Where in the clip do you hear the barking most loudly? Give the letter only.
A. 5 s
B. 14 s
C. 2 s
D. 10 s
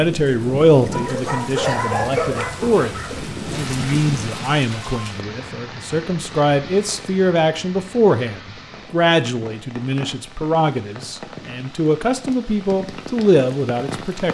C.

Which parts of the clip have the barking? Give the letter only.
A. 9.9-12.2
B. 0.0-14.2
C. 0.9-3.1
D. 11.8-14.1
C.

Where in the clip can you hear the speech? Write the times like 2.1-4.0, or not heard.
0.0-14.2.